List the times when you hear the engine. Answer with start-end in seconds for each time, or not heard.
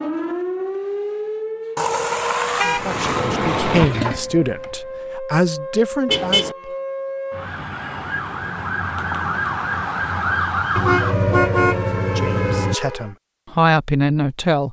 2.6-4.8.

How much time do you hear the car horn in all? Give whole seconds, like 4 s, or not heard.
4 s.